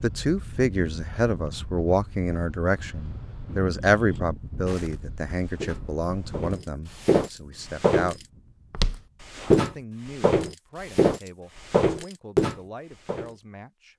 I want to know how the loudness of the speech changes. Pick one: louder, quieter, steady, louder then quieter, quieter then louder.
quieter.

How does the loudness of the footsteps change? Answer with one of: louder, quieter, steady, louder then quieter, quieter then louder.
louder.